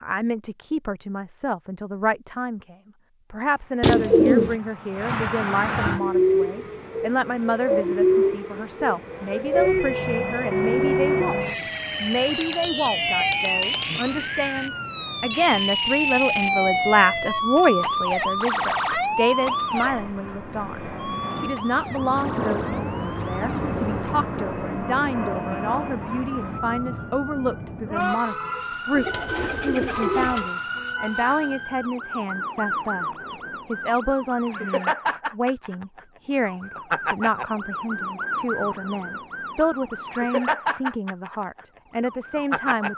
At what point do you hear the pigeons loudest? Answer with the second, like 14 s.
4 s.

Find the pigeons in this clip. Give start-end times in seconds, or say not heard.
3.8-4.5, 28.9-30.5.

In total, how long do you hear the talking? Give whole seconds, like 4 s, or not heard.
42 s.